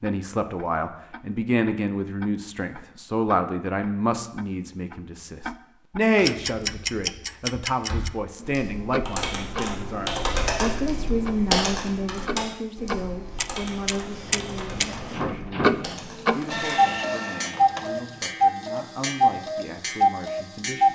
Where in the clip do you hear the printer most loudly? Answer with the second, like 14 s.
17 s.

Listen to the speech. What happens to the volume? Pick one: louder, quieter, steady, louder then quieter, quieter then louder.
quieter.